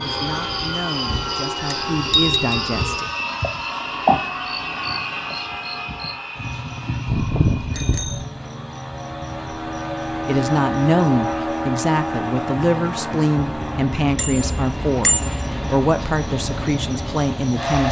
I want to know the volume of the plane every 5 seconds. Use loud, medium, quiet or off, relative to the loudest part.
loud, medium, loud, loud.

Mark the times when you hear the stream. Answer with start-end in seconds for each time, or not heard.
not heard.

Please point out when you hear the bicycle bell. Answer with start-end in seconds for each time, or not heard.
1.7-2.4, 7.0-8.2, 14.2-15.4.